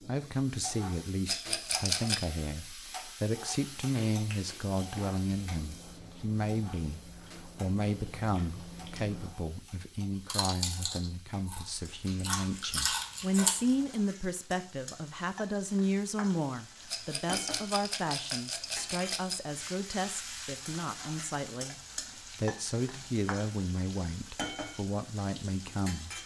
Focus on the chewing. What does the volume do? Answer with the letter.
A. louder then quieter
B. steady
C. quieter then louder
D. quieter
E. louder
E.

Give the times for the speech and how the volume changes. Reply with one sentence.
You can hear the speech from 0.1 to 26.2 s, at a steady volume.